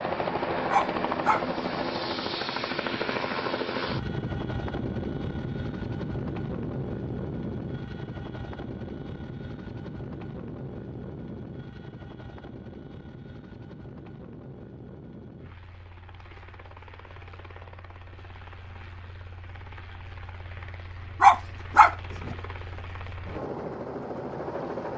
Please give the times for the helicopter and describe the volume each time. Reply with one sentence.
The helicopter can be heard from 0.0 to 24.9 s, getting quieter then louder.